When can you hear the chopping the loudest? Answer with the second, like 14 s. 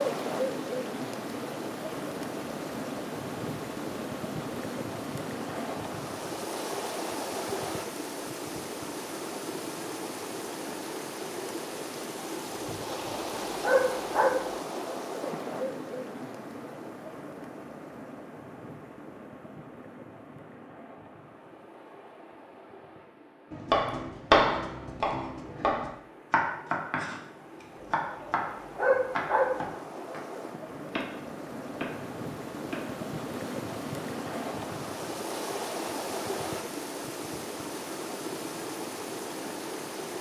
24 s.